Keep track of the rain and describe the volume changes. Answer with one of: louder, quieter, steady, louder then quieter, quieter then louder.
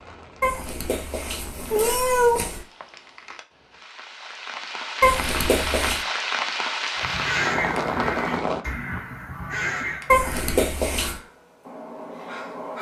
louder.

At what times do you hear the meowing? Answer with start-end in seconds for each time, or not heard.
0.4-2.6, 5.0-6.0, 10.1-11.2.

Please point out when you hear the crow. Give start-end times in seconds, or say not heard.
7.0-12.7.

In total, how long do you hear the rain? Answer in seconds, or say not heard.
9 s.